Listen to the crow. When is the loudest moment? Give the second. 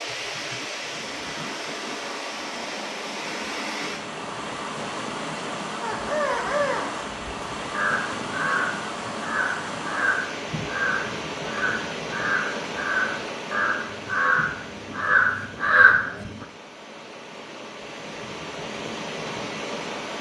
16 s.